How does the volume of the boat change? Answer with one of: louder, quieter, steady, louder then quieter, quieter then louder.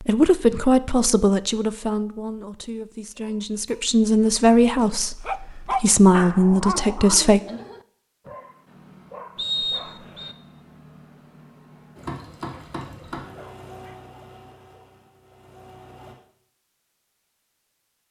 quieter.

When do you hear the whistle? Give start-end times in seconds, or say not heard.
9.3-10.3.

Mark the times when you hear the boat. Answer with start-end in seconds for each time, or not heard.
11.9-16.1.